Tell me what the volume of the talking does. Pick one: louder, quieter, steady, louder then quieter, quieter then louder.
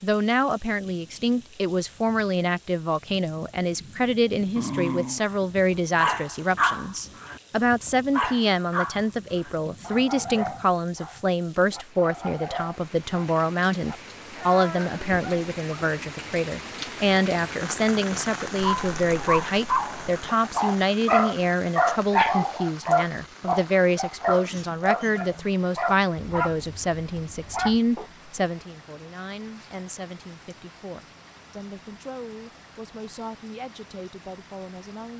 quieter.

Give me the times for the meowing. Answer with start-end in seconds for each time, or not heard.
not heard.